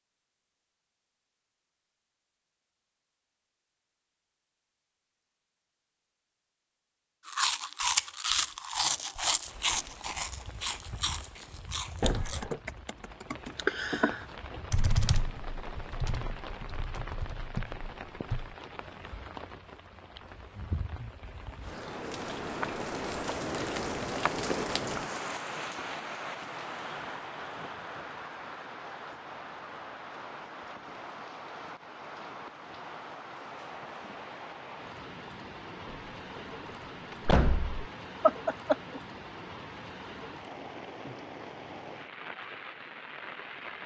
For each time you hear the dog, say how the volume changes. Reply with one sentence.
You can't hear the dog here.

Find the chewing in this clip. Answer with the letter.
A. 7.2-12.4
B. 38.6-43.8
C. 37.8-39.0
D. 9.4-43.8
A.